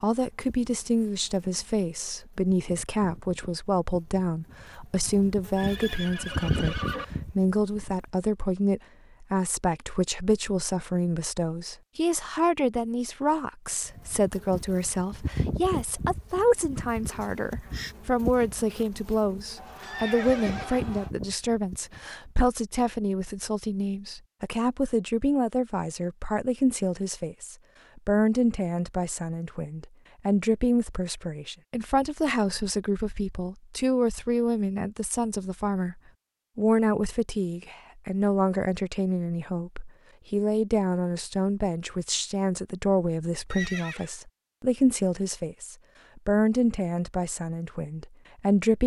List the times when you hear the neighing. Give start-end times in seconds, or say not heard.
5.5-7.0, 19.6-21.1, 43.5-44.1.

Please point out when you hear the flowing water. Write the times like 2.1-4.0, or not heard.
not heard.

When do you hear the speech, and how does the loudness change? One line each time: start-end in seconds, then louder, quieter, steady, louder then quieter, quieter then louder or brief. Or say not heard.
0.0-48.8 steady.